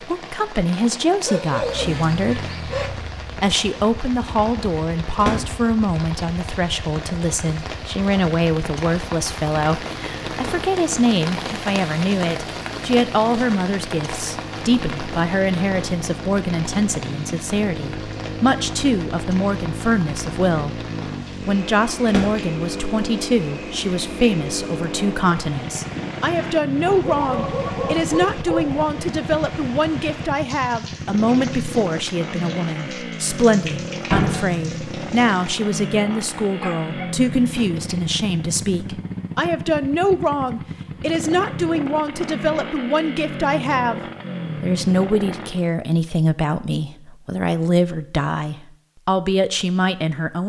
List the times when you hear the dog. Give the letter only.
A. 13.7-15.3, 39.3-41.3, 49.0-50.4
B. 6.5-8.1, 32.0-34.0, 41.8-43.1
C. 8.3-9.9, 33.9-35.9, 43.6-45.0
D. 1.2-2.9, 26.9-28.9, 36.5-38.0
D.